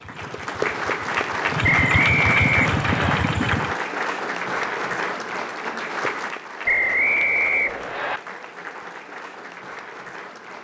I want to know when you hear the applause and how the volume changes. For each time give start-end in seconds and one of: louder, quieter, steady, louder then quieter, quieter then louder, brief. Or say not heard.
0.0-10.5 quieter.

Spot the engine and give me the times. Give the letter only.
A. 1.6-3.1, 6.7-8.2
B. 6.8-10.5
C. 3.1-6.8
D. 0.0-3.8
D.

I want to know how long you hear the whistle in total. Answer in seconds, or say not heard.
3 s.